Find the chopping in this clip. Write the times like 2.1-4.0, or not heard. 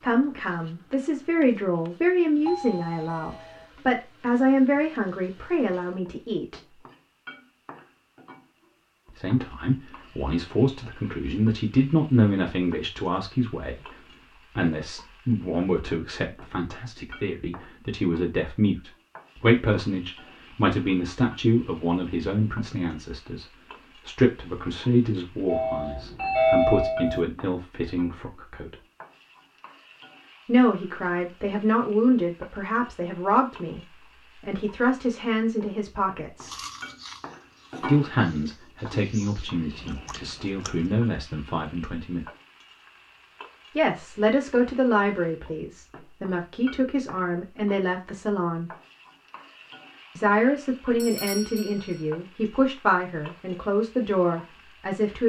not heard.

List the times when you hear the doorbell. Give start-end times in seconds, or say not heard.
2.5-3.6, 25.4-27.2, 51.0-52.0.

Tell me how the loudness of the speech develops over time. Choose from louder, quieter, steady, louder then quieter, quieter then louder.
steady.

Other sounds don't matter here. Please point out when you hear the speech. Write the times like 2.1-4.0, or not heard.
0.0-6.8, 9.1-28.8, 30.4-36.5, 37.8-42.2, 43.8-48.7, 50.1-55.2.